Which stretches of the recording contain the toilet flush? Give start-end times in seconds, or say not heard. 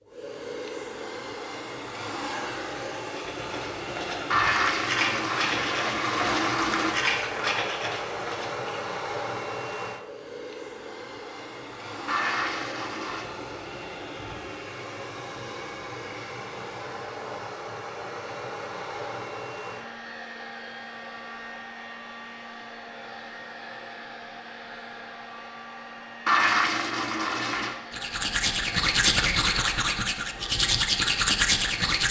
4.3-7.0, 12.1-13.2, 26.2-27.8.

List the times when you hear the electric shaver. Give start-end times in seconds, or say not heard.
not heard.